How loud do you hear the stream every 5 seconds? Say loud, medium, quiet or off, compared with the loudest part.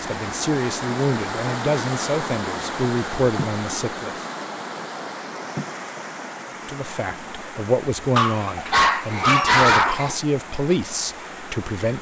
loud, medium, medium.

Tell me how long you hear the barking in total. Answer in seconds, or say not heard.
2 s.